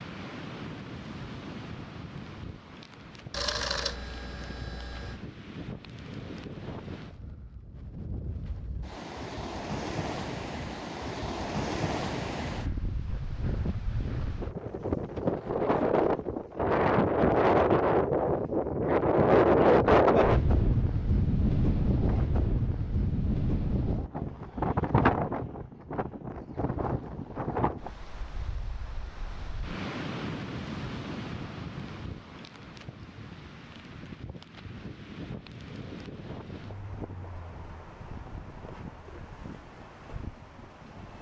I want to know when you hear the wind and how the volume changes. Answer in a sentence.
The wind can be heard from 0.0 to 41.1 s, getting louder then quieter.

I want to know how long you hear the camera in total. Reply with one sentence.
You can hear the camera for 2 seconds altogether.